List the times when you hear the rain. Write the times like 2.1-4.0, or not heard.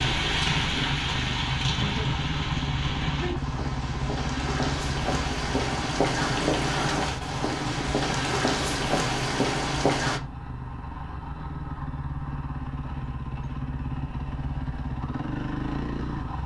0.0-10.2.